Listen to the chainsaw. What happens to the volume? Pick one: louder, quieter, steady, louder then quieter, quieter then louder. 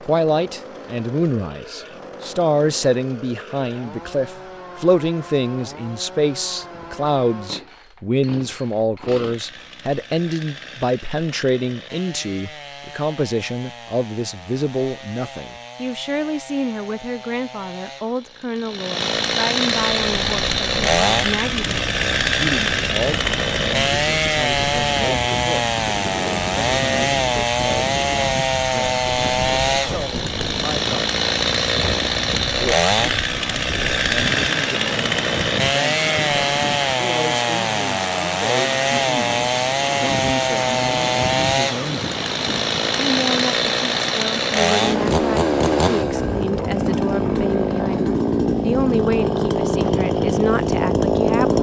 louder.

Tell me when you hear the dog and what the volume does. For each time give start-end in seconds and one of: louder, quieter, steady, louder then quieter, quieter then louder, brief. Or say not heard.
not heard.